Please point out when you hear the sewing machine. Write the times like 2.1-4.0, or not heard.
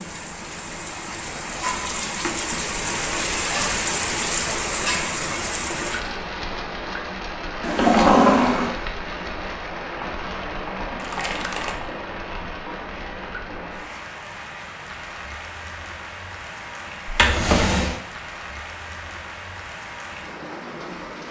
not heard.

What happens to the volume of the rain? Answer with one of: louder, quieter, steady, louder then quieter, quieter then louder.
quieter.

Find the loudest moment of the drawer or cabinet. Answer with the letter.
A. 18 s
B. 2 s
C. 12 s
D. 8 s
D.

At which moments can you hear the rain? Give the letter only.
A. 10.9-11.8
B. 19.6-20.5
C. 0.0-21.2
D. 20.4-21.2
C.